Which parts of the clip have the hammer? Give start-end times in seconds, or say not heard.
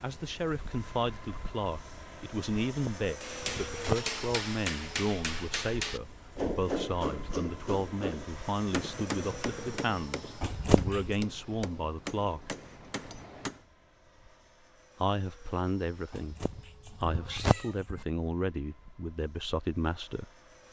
3.2-13.6.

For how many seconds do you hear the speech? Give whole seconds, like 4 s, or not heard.
18 s.